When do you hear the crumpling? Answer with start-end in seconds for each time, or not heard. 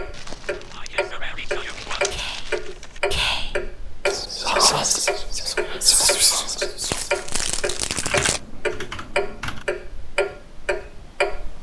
0.1-2.8, 6.8-8.4.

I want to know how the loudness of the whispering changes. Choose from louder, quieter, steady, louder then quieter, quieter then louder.
louder.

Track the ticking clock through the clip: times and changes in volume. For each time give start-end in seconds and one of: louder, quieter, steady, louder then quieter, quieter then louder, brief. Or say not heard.
0.0-11.5 steady.